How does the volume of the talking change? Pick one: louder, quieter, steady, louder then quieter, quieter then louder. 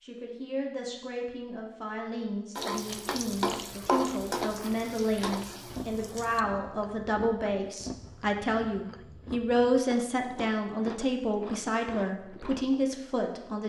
louder.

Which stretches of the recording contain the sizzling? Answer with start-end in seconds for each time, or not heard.
2.5-6.4.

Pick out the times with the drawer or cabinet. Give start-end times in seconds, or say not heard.
not heard.